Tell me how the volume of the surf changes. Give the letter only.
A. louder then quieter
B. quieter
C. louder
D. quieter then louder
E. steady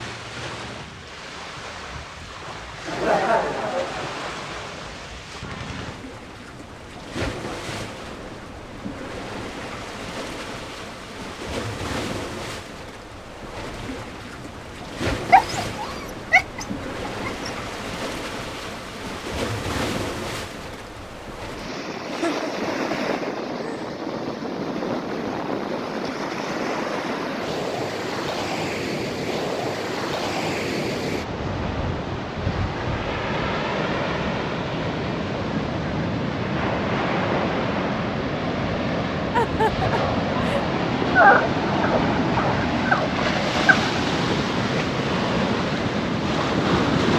C.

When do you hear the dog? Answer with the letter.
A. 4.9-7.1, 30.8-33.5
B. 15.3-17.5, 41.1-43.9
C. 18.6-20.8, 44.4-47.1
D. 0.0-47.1
B.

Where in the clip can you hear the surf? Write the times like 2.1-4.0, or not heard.
0.0-47.1.